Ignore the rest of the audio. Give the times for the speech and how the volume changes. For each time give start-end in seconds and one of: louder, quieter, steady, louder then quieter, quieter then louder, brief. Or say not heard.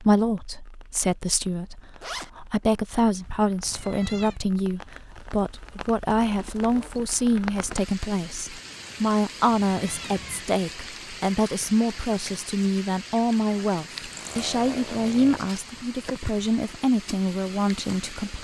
0.0-18.3 steady.